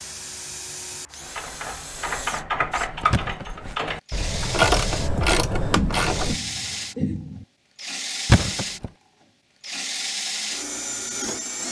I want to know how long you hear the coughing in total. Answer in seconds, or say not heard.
2 s.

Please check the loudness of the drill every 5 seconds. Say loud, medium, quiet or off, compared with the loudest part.
medium, loud, loud.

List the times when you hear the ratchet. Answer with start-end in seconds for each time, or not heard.
1.2-6.4.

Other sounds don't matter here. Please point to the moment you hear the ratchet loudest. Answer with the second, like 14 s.
5 s.